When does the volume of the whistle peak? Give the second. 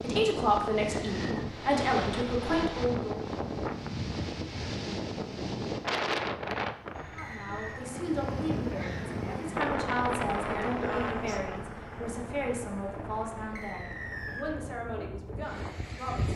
14 s.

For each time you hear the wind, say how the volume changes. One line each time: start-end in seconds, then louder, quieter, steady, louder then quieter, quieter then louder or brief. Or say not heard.
0.0-16.3 quieter.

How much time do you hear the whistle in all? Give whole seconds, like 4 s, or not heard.
2 s.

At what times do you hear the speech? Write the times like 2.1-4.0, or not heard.
0.0-3.2, 7.2-16.3.